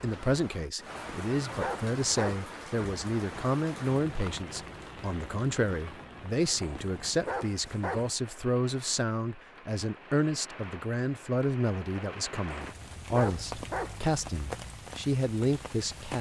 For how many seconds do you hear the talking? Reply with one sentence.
The talking can be heard for 16 seconds in total.